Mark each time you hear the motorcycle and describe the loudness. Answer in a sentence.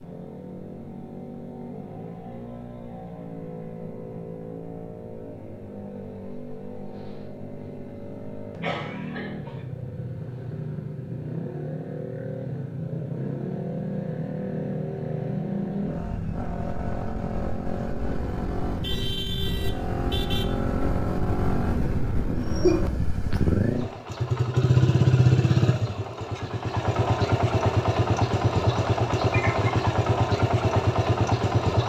The motorcycle can be heard from 0.0 to 31.8 s, getting louder.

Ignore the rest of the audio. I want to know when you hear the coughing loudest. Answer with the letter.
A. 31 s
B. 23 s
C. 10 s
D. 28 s
B.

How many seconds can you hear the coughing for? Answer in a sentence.
The coughing can be heard for 2 seconds in total.